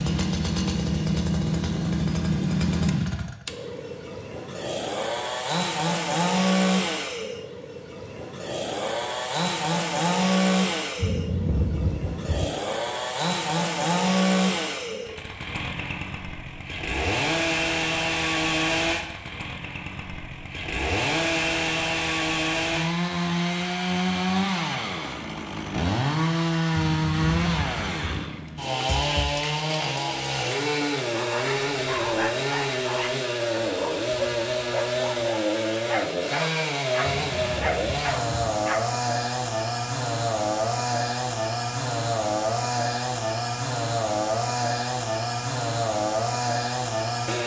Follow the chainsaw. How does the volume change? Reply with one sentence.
The volume of the chainsaw stays about the same.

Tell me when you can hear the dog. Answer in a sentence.
The dog can be heard from 30.8 to 38.9 s.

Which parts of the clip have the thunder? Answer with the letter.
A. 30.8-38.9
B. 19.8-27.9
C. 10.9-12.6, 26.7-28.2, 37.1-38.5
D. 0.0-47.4
C.